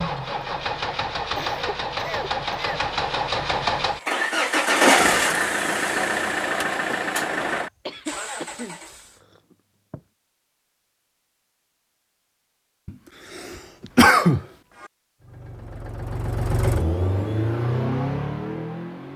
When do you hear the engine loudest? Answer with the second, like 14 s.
5 s.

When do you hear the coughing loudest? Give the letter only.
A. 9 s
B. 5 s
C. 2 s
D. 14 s
D.